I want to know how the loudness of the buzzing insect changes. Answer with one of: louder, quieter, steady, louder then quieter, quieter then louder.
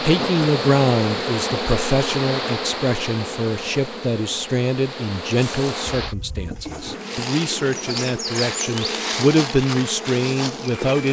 quieter then louder.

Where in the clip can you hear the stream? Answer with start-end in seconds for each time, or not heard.
0.0-6.2.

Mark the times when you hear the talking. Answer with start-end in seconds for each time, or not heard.
0.0-11.0.